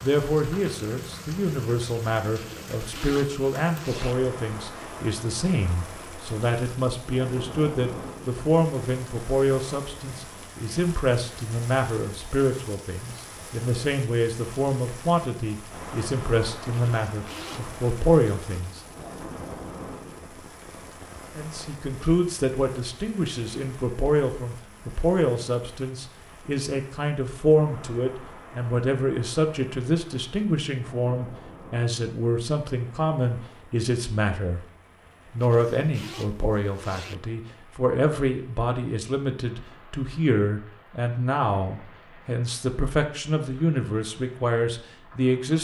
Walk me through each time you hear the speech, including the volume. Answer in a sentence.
You can hear the speech from 0.0 to 18.8 s, at a steady volume; from 21.4 to 34.6 s, at a steady volume; and from 35.3 to 45.5 s, at a steady volume.